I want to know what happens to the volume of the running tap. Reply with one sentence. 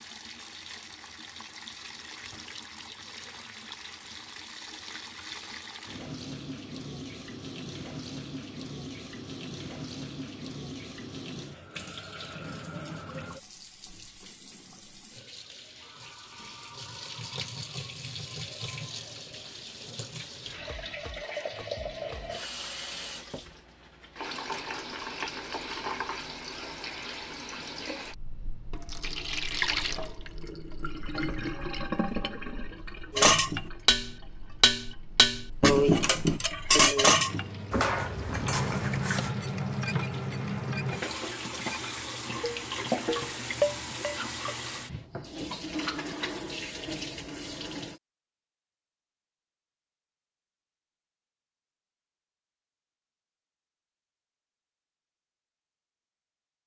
The loudness of the running tap goes up.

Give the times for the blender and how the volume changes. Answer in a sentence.
The blender can't be heard in this clip.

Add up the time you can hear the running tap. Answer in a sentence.
The running tap can be heard for 48 seconds in total.